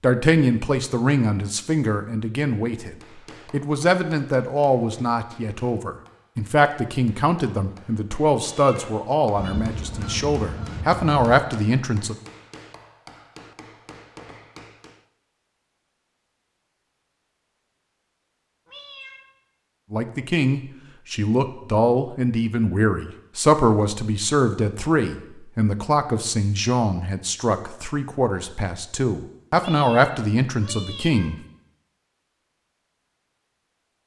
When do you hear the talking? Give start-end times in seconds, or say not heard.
0.0-12.2, 19.9-31.4.